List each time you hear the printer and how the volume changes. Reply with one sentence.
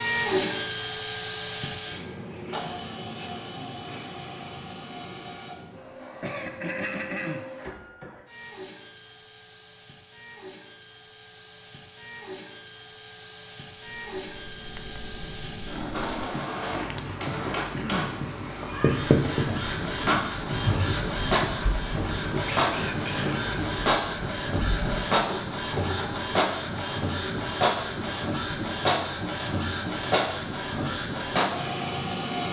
The printer can be heard from 0.0 to 32.4 s, getting quieter then louder.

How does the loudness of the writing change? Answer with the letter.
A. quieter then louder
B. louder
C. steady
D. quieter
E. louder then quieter
E.